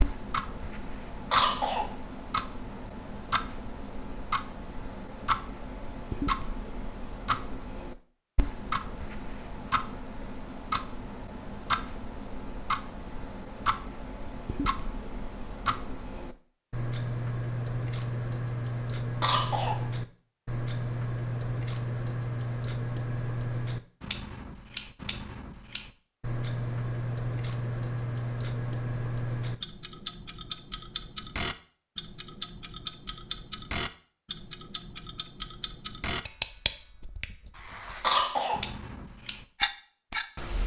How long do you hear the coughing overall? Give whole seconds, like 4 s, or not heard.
2 s.